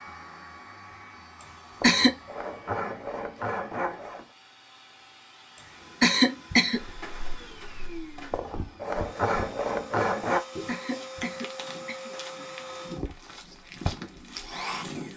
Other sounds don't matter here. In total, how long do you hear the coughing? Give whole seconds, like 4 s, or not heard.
3 s.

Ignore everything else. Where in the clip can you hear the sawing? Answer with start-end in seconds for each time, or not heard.
1.8-4.2, 8.3-10.4.